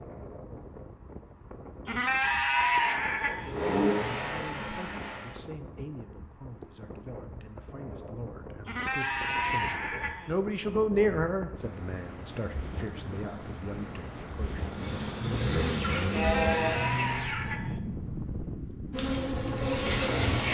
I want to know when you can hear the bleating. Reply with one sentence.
The bleating can be heard from 1.9 to 3.5 s, from 8.7 to 10.3 s and from 16.1 to 17.8 s.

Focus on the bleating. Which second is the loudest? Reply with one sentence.
The loudest moment of the bleating is at 3 seconds.